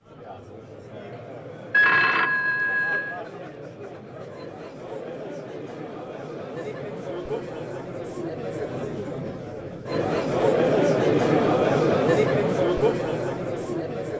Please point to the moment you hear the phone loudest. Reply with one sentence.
The loudest moment of the phone is at 2 seconds.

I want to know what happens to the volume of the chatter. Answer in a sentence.
The volume of the chatter goes up.